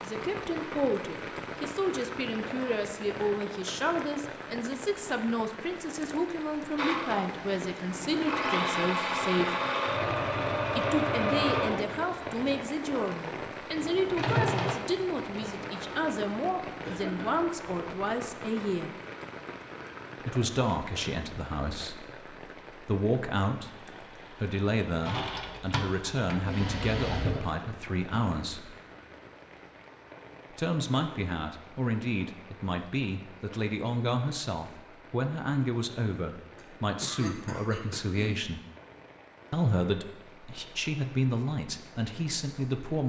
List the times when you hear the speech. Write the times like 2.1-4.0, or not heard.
0.0-9.6, 10.8-18.9, 20.2-28.8, 30.5-38.6, 39.5-43.0.